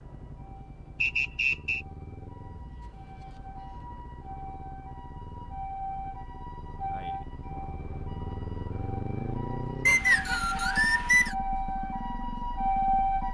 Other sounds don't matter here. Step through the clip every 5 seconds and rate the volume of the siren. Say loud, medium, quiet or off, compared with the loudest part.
quiet, medium, loud.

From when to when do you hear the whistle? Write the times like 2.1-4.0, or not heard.
1.0-1.9, 9.8-11.3.